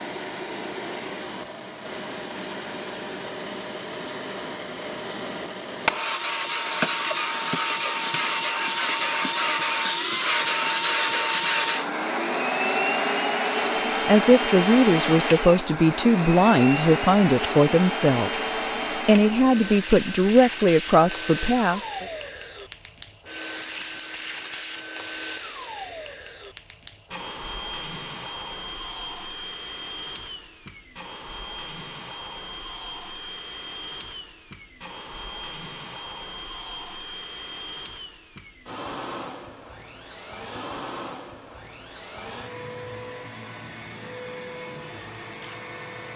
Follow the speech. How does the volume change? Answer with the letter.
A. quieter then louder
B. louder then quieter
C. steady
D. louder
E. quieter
C.